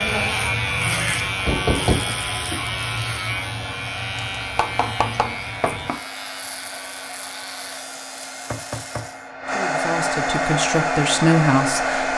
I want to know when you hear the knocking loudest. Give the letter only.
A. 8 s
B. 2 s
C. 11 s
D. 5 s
B.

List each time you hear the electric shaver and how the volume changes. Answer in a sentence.
You can hear the electric shaver from 0.0 to 9.3 s, getting quieter.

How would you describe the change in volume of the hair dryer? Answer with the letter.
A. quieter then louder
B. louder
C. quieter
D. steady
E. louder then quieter
B.